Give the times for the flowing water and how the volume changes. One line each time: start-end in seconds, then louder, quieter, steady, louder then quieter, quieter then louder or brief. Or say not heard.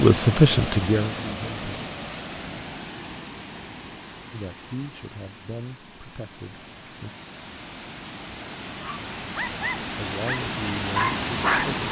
0.0-11.8 quieter then louder.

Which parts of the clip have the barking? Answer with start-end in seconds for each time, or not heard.
8.8-11.8.